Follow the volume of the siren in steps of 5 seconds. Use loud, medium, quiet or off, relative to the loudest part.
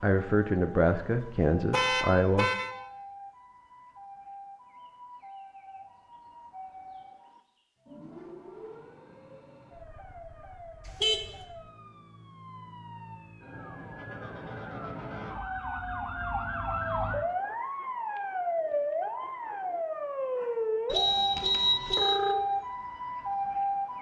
quiet, quiet, quiet, loud, loud.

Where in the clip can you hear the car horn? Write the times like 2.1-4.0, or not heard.
1.2-2.7, 10.8-11.4, 20.9-22.2.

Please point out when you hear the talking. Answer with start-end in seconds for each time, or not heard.
0.0-2.5.